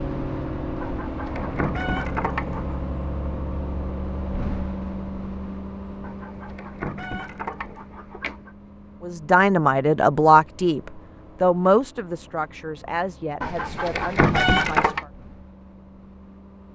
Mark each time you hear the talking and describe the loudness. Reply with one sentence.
You can hear the talking from 9.0 to 15.1 s, getting quieter.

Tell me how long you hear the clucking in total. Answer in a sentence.
You can hear the clucking for 6 seconds altogether.